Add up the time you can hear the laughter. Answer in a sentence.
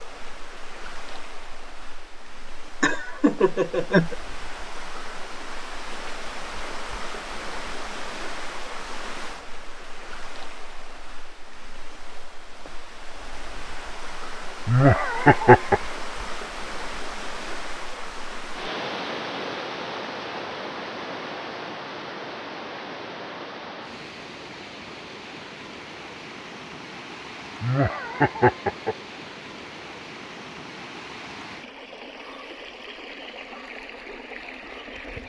The laughter can be heard for 4 seconds in total.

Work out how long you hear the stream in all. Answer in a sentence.
You can hear the stream for 35 seconds altogether.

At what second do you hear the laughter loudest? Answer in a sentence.
The volume of the laughter peaks at 15 seconds.